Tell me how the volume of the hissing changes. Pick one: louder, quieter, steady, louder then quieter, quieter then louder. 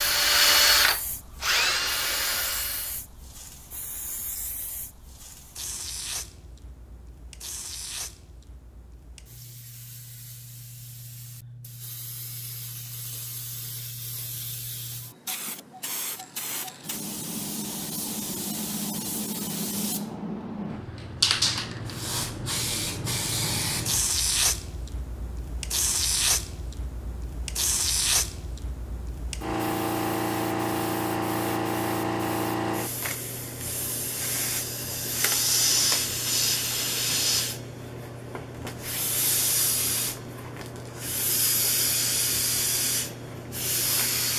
louder.